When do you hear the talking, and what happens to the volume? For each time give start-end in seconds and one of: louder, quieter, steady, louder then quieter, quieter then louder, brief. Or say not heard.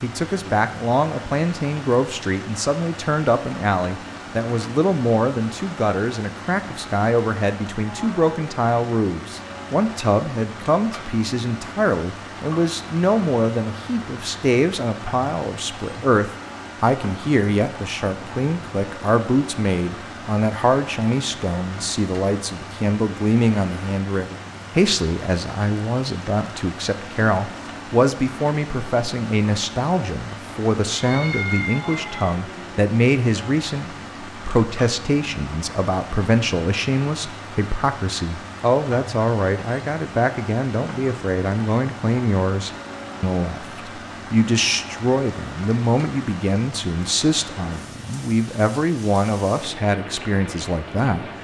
0.0-51.2 steady.